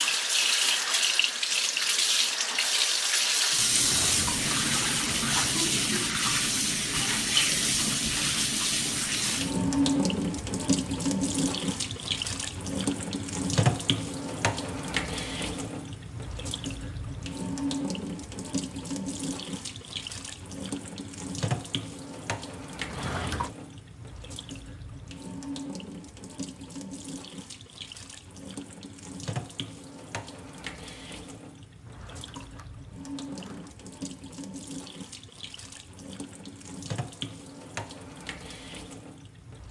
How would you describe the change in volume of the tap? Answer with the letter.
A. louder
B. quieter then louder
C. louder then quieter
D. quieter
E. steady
D.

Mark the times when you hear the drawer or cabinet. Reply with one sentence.
The drawer or cabinet can be heard from 3.7 to 5.7 s, from 22.8 to 23.5 s and from 31.8 to 33.8 s.